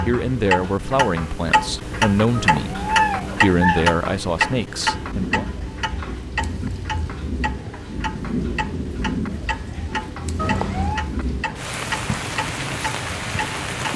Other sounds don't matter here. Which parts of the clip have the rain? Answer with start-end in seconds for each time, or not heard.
4.8-13.9.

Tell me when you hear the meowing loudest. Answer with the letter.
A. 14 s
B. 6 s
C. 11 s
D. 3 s
D.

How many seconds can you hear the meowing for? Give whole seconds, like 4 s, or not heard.
2 s.